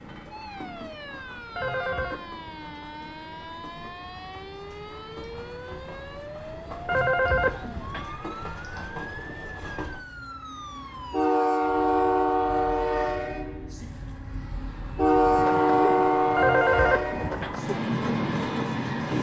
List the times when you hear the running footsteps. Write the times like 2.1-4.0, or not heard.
not heard.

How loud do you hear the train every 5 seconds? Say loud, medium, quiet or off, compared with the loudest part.
quiet, quiet, loud, loud.